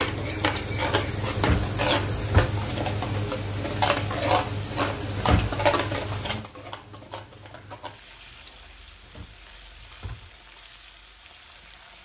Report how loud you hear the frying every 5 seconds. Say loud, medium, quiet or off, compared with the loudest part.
loud, medium, quiet.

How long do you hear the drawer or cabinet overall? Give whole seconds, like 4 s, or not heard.
3 s.